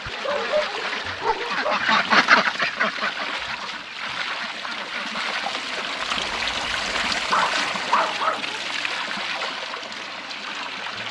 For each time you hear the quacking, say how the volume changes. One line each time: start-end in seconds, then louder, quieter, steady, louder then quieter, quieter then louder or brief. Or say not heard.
0.0-6.2 louder then quieter.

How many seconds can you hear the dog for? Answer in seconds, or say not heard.
4 s.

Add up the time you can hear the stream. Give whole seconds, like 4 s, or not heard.
11 s.